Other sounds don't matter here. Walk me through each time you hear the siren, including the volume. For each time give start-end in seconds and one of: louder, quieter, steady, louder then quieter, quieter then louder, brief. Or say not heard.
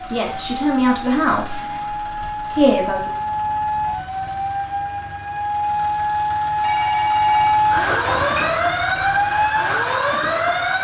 0.1-10.7 louder.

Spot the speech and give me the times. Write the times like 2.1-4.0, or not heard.
0.1-1.6, 2.5-3.1.